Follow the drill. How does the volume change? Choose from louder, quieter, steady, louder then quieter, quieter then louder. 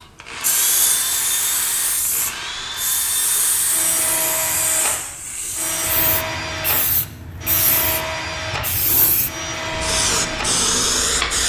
steady.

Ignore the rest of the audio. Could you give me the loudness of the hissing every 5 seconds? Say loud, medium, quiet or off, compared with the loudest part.
medium, medium, loud.